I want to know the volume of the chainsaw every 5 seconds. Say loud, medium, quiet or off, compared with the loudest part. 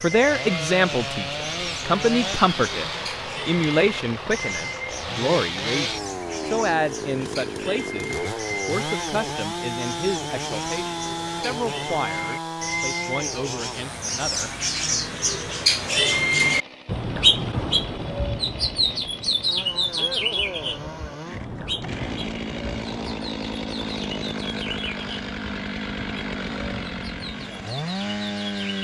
loud, loud, loud, medium, loud, loud.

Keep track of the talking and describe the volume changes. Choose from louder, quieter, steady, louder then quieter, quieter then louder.
quieter.